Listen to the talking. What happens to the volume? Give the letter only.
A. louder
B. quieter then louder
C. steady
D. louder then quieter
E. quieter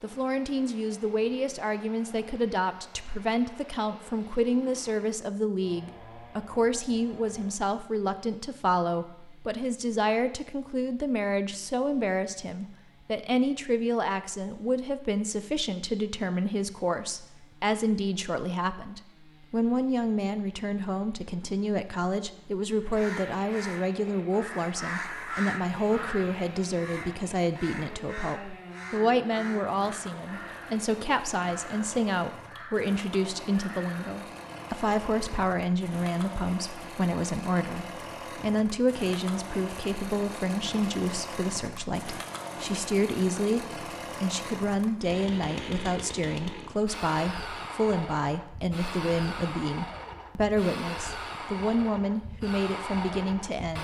C.